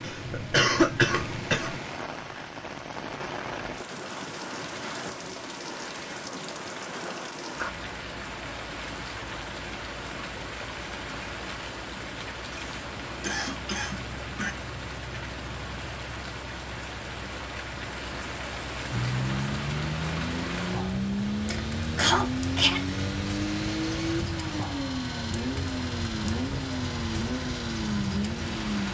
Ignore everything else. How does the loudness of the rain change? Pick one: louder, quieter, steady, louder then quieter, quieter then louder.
steady.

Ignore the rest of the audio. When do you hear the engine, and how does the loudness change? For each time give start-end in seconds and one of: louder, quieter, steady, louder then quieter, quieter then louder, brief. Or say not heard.
18.9-28.8 steady.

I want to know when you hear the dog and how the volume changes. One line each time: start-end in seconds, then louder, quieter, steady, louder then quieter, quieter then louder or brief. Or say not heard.
not heard.